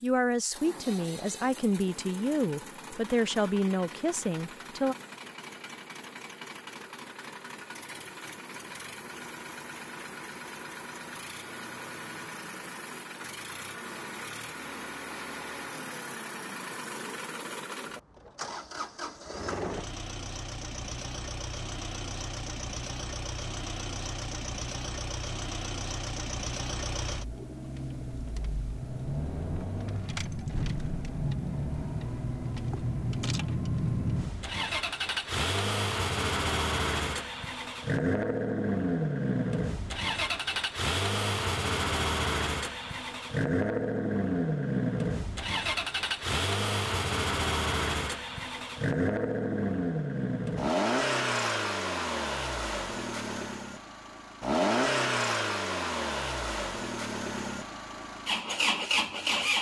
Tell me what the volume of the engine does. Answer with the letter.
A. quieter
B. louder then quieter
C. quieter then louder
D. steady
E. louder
E.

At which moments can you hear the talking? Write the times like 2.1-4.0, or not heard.
0.0-5.0.